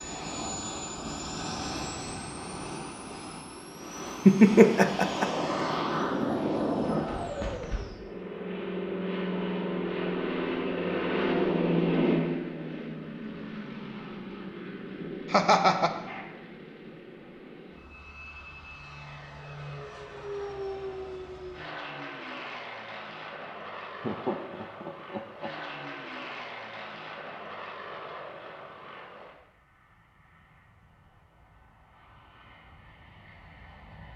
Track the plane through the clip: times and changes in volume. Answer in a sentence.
You can hear the plane from 0.0 to 34.1 s, getting quieter.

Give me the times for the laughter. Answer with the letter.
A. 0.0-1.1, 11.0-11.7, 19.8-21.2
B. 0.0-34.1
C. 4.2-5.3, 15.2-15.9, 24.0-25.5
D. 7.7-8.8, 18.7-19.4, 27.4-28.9
C.